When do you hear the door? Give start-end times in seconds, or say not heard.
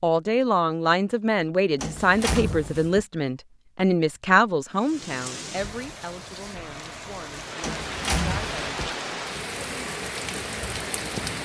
1.8-3.0, 7.6-8.9.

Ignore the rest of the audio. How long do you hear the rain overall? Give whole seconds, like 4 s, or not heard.
7 s.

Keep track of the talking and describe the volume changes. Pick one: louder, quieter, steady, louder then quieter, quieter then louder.
quieter.